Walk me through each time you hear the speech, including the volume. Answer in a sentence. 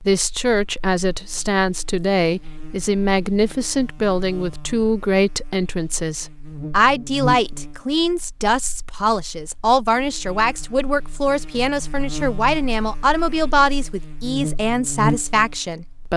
You can hear the speech from 0.1 to 16.1 s, at a steady volume.